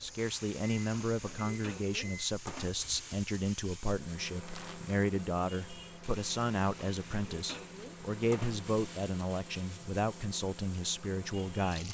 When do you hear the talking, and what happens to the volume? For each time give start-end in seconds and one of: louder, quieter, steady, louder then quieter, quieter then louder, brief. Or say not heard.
0.0-11.8 steady.